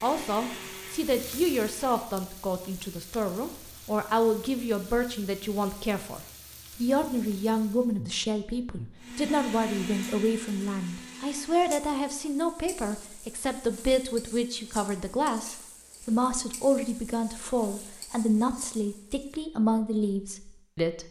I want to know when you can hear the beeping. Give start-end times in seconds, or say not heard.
not heard.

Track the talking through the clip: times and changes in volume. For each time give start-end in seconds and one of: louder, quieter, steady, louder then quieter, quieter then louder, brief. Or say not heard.
0.0-21.0 steady.